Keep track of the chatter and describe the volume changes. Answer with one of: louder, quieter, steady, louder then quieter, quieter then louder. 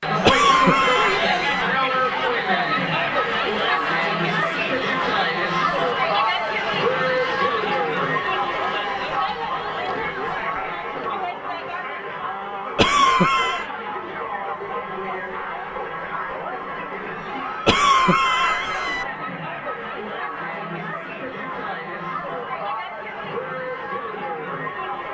quieter.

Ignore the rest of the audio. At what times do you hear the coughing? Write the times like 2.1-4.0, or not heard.
0.2-1.6, 12.8-13.7, 17.6-19.1.